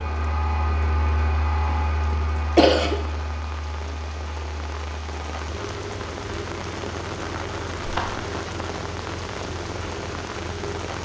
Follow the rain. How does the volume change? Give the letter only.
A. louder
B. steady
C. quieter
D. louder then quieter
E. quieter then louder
A.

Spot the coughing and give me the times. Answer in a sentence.
The coughing can be heard from 1.7 to 3.0 s.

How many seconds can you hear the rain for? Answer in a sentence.
The rain can be heard for 11 seconds in total.